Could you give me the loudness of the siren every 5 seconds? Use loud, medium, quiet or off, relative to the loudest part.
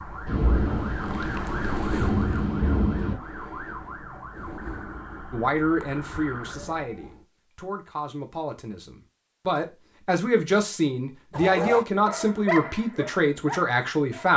loud, medium, off.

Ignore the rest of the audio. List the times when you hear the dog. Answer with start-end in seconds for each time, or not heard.
11.3-14.3.